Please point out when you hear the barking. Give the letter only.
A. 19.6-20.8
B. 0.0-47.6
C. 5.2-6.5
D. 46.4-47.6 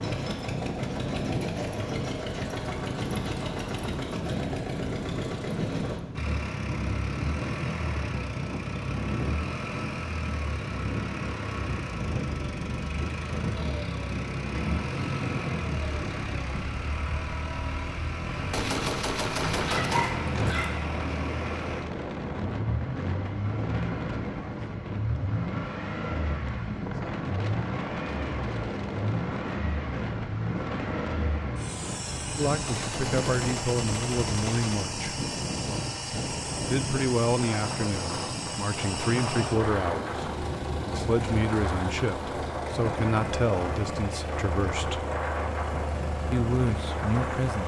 A.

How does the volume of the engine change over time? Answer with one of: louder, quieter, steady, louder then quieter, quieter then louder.
steady.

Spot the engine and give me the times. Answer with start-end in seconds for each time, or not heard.
0.0-47.6.